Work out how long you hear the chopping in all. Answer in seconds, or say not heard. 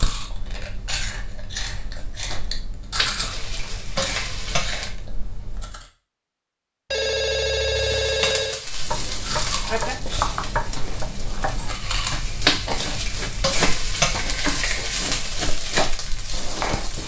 8 s.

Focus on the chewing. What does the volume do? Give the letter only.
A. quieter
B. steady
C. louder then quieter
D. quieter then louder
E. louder
A.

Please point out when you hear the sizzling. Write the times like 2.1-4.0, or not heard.
2.9-4.9, 7.8-17.0.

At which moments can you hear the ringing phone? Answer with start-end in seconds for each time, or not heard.
6.9-8.6.